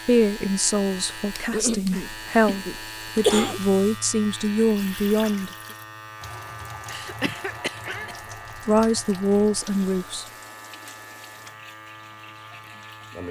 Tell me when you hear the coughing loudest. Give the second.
3 s.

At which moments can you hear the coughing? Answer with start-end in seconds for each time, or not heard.
1.5-3.6, 6.8-8.2.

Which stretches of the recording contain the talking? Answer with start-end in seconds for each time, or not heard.
0.1-5.5, 8.7-10.2.